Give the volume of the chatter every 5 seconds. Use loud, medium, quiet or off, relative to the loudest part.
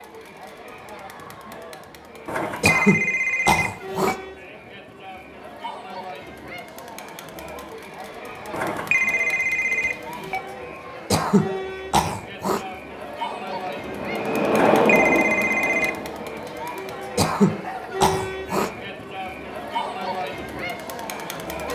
medium, medium, loud, loud, loud.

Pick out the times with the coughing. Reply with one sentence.
You can hear the coughing from 2.6 to 4.2 s, from 11.1 to 12.7 s and from 17.1 to 18.7 s.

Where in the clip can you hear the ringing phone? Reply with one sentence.
The ringing phone can be heard from 2.2 to 4.2 s, from 8.5 to 10.4 s and from 14.5 to 15.9 s.